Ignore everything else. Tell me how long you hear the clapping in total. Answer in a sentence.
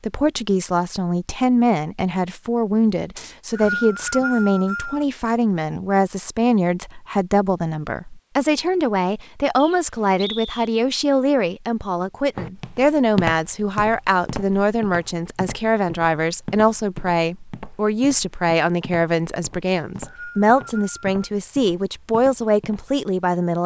You can't hear the clapping here.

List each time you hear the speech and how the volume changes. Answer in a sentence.
You can hear the speech from 0.0 to 23.6 s, at a steady volume.